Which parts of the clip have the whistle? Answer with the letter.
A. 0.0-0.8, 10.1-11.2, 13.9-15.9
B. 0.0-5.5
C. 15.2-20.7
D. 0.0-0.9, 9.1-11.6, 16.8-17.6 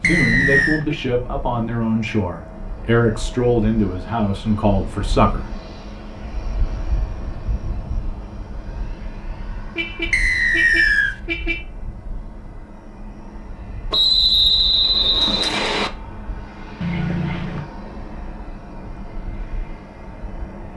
A.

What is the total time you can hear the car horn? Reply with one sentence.
You can hear the car horn for 4 seconds altogether.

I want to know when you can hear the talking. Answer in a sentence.
You can hear the talking from 0.0 to 5.5 s.